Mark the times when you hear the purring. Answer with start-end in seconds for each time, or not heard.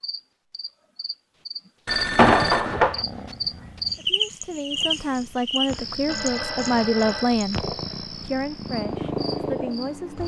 2.6-10.2.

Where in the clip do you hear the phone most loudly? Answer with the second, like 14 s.
2 s.